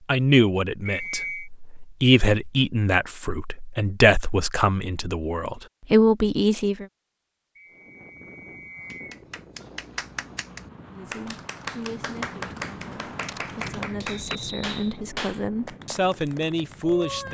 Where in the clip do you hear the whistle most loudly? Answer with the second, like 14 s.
1 s.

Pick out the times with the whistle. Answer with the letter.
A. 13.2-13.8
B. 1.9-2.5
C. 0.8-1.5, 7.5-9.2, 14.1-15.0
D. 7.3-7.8
C.